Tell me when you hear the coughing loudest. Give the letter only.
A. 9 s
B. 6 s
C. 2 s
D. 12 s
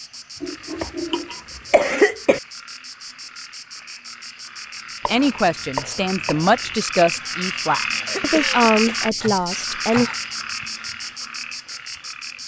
C.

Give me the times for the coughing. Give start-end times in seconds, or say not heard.
0.4-2.4, 8.1-9.0.